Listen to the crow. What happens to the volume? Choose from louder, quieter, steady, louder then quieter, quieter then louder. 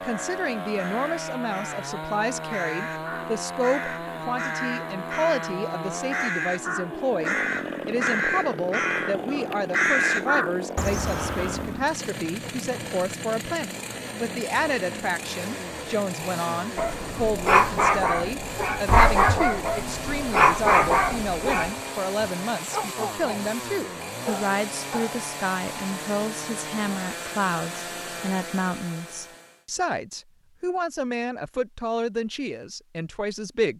louder.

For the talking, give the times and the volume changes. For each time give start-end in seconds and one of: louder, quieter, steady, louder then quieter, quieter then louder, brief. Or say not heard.
0.0-33.7 steady.